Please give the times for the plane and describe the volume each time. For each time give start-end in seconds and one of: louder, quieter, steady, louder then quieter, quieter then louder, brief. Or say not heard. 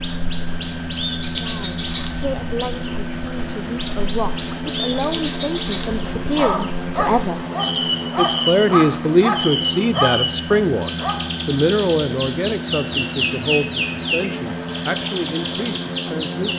0.0-16.5 steady.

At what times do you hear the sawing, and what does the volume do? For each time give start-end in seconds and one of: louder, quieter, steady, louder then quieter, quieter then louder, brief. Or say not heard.
not heard.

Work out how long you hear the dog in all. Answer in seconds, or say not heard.
5 s.